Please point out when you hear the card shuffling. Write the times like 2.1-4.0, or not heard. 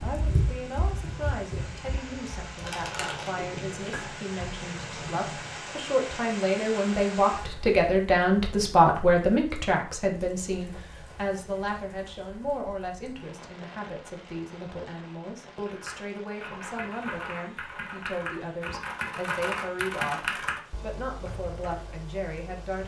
2.5-3.4.